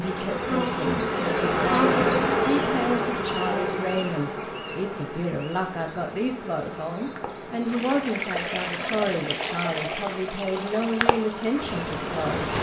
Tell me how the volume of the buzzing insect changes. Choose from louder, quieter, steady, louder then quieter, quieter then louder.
quieter.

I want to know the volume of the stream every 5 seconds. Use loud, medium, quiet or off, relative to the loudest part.
off, loud, loud.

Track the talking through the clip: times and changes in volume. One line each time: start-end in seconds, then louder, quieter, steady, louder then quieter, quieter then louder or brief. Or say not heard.
0.0-12.5 steady.